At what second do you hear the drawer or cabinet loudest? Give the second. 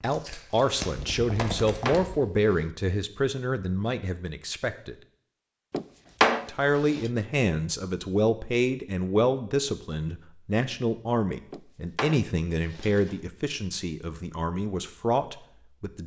6 s.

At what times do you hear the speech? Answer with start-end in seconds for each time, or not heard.
0.0-5.0, 6.5-16.0.